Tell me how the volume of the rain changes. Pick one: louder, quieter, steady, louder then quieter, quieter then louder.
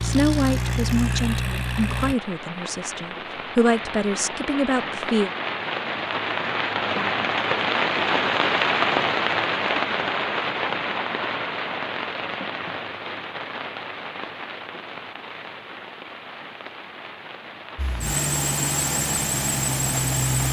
louder then quieter.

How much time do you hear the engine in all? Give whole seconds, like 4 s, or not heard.
5 s.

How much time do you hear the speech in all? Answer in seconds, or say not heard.
5 s.